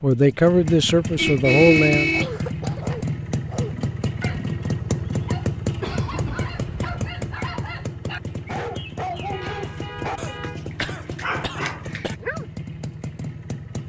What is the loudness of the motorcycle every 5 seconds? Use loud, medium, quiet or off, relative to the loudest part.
loud, loud, medium.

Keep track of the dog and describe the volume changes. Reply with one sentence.
The loudness of the dog goes down, then up.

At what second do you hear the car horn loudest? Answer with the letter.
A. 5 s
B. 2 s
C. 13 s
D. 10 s
B.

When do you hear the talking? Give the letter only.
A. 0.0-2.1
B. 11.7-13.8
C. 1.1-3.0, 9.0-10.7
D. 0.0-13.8
A.